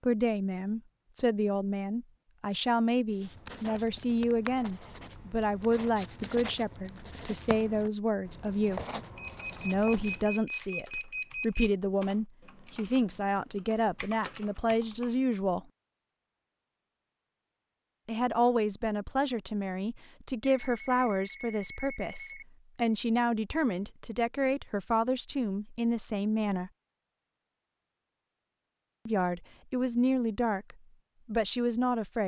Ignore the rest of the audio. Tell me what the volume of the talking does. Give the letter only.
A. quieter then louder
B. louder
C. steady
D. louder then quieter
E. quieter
C.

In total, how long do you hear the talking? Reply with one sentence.
You can hear the talking for 27 seconds altogether.